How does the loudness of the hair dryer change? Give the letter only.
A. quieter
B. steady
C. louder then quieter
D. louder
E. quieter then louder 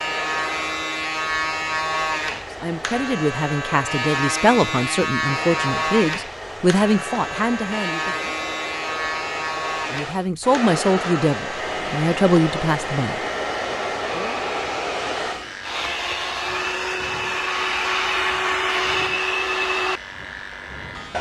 D.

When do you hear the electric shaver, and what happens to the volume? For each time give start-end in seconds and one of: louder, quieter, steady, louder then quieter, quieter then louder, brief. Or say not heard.
0.0-21.1 quieter.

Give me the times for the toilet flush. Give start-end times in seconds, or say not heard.
not heard.